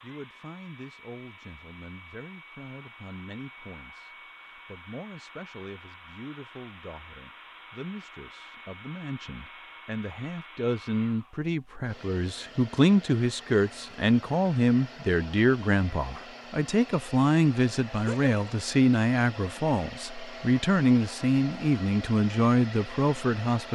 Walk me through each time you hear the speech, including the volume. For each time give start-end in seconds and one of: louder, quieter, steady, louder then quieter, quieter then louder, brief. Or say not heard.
0.0-23.6 louder.